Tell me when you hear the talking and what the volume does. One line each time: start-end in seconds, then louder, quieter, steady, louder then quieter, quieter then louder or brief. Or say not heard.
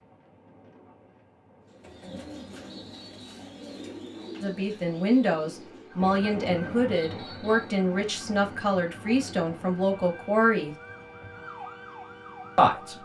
4.4-10.8 steady
12.6-13.0 brief.